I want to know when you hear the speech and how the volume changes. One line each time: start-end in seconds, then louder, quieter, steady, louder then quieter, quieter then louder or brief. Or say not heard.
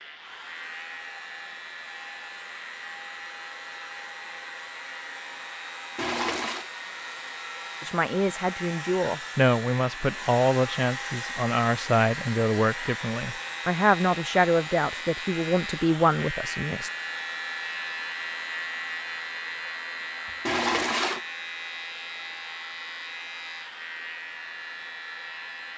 7.8-16.9 steady.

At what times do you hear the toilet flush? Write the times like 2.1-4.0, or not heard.
6.0-6.7, 20.4-21.2.